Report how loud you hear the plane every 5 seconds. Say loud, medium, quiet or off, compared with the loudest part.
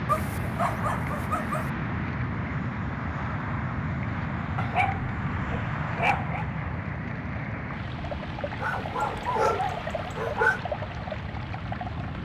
loud, loud, medium.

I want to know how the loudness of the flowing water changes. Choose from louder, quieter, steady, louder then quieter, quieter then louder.
louder.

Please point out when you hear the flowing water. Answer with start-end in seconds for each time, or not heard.
0.1-12.1.